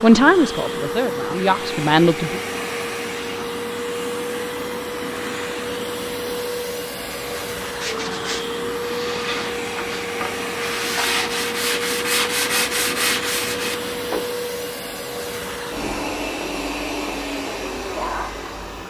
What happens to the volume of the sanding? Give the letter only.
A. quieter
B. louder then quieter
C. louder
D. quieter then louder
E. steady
C.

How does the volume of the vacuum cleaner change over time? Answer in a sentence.
The volume of the vacuum cleaner stays about the same.